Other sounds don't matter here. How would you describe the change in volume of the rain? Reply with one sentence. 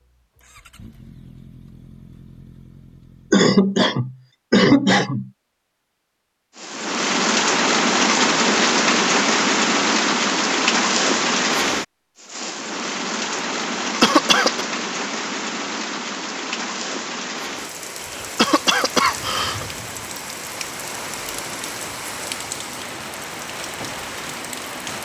The volume of the rain goes down.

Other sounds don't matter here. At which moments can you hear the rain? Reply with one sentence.
The rain can be heard from 6.5 to 25.0 s.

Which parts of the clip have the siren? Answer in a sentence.
The siren can't be heard in this clip.